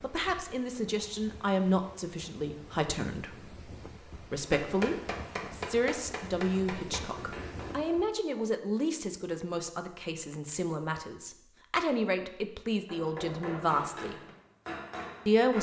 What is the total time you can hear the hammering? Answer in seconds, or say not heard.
6 s.